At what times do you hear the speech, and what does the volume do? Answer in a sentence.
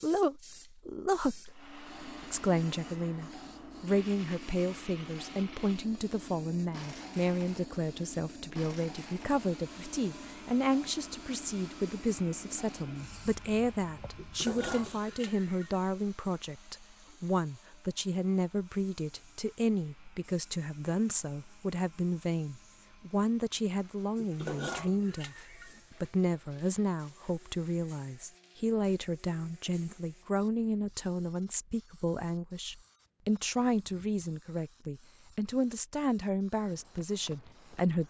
You can hear the speech from 0.0 to 38.0 s, at a steady volume.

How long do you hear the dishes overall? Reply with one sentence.
You can hear the dishes for 3 seconds altogether.